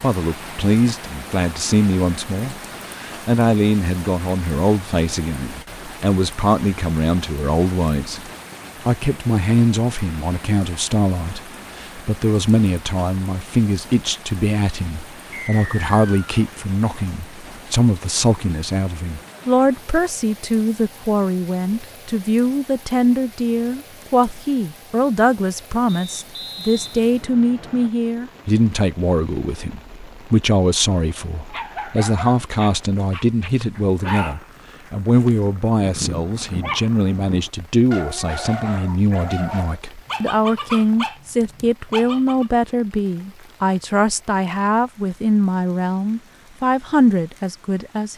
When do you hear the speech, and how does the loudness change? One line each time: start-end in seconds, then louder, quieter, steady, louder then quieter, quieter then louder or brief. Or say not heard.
0.0-48.1 steady.